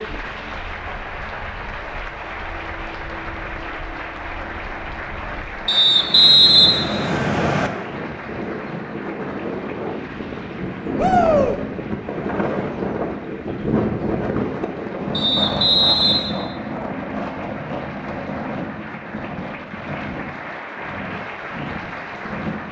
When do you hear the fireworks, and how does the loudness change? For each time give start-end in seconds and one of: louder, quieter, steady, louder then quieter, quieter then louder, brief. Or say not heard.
not heard.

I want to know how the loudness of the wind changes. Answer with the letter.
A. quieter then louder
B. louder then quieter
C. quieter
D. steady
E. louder
B.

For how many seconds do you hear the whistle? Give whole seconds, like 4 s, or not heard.
3 s.